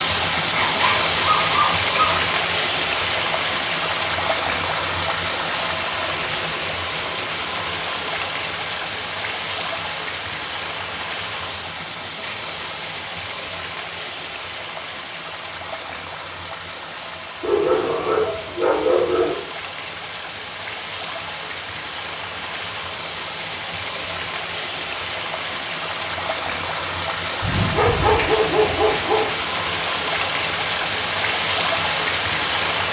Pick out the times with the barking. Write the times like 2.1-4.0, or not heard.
0.6-2.2, 17.4-19.4, 27.4-29.3.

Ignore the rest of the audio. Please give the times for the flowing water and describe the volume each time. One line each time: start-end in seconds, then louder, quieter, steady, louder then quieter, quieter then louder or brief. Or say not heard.
0.0-32.8 quieter then louder.